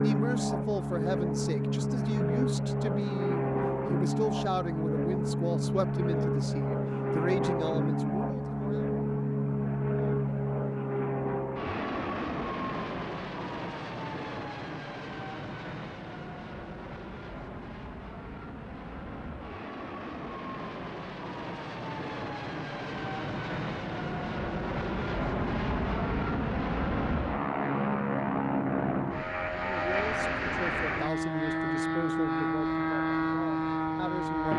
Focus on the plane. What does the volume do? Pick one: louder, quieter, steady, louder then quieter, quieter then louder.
quieter then louder.